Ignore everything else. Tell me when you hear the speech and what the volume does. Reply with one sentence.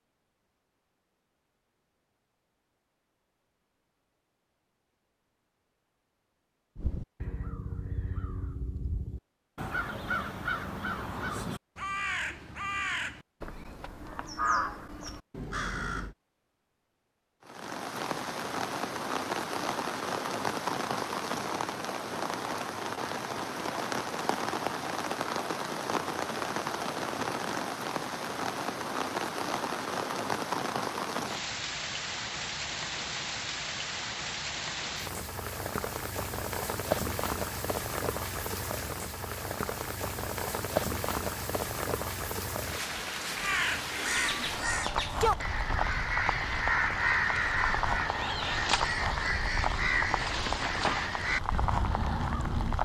The speech can't be heard in this clip.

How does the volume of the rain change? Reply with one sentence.
The volume of the rain stays about the same.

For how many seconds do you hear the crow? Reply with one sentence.
You can hear the crow for 19 seconds altogether.